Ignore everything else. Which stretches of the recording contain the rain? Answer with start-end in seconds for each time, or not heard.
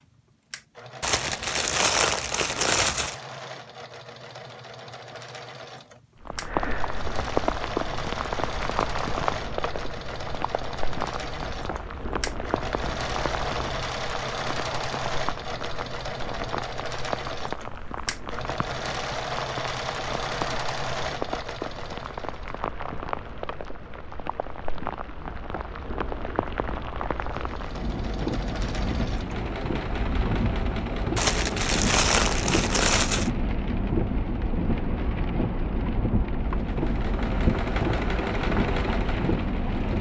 6.2-39.9.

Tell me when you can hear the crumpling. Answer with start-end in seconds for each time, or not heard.
1.0-3.1, 31.1-33.3.